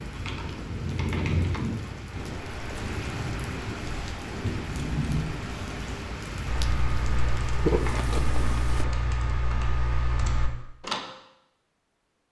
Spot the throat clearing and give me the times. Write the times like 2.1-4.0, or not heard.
not heard.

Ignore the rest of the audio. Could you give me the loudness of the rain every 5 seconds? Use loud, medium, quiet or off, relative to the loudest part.
loud, loud, off.